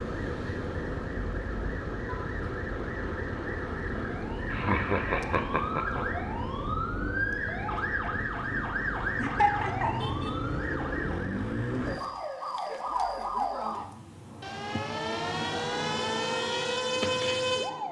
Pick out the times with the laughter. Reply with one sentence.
The laughter can be heard from 4.5 to 6.0 s and from 9.2 to 10.3 s.